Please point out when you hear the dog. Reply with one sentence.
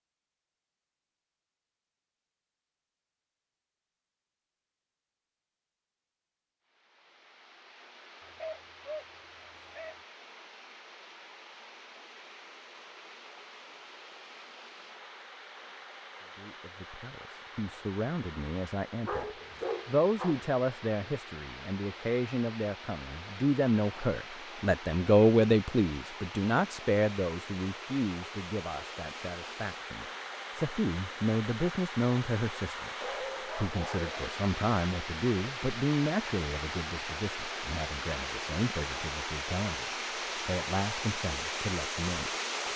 The dog can be heard from 8.2 to 10.0 s, from 19.1 to 20.5 s and from 33.0 to 34.4 s.